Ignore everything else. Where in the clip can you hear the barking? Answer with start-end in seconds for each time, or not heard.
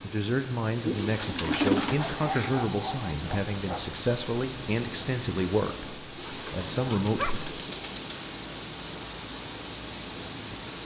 1.9-3.9, 6.5-7.5.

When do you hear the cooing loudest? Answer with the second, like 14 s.
2 s.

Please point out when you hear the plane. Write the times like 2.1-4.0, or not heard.
not heard.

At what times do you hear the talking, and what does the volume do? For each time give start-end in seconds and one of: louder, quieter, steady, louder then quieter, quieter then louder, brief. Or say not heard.
0.0-7.4 steady.